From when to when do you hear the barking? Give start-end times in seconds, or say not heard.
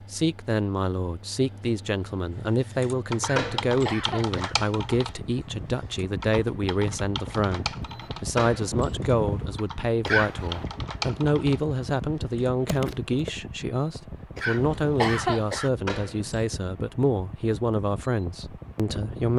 not heard.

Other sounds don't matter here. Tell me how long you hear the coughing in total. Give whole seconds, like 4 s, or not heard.
3 s.